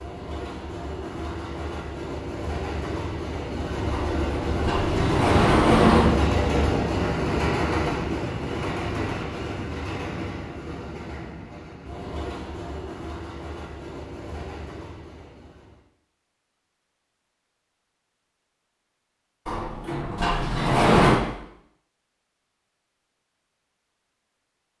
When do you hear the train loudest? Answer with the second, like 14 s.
6 s.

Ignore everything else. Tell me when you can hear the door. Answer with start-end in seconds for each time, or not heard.
3.9-6.1, 19.4-21.2.